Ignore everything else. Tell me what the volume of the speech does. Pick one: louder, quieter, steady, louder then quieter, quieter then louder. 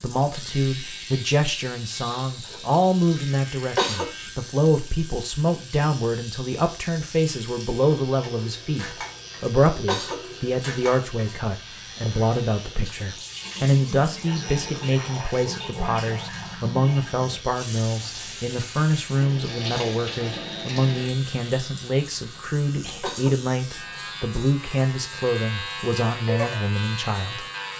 steady.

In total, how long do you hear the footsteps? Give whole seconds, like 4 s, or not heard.
not heard.